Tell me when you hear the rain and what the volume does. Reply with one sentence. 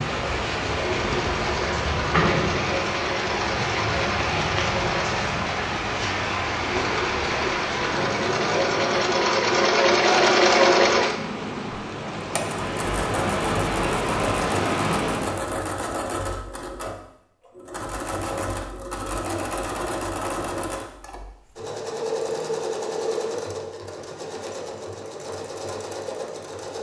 The rain can be heard from 0.0 to 15.5 s, getting quieter then louder.